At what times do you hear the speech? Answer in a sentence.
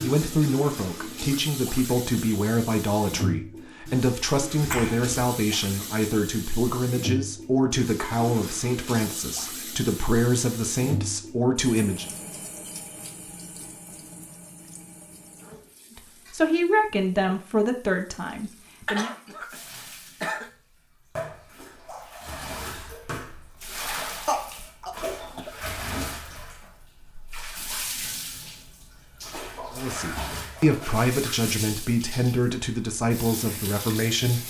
You can hear the speech from 0.0 to 12.1 s, from 15.9 to 19.1 s and from 29.7 to 34.4 s.